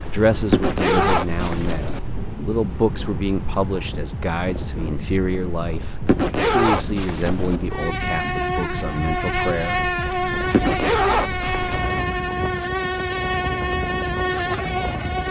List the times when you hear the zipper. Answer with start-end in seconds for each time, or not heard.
0.5-2.0, 6.0-7.6, 10.5-12.1.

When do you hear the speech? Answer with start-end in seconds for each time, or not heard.
0.0-10.2.